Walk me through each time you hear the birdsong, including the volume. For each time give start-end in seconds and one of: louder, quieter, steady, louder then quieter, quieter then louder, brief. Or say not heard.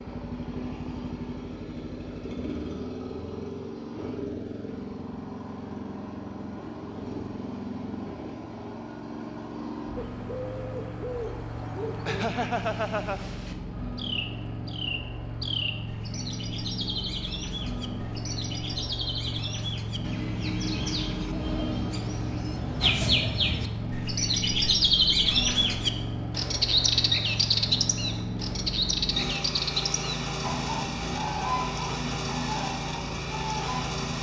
9.9-34.0 louder then quieter.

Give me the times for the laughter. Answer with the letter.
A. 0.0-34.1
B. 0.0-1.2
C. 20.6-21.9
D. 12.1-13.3
D.